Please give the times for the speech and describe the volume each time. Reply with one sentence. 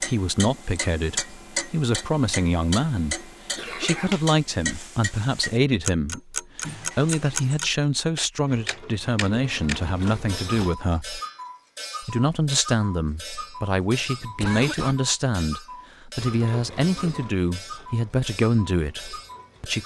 The speech can be heard from 0.0 to 11.2 s, at a steady volume; and from 12.0 to 19.8 s, at a steady volume.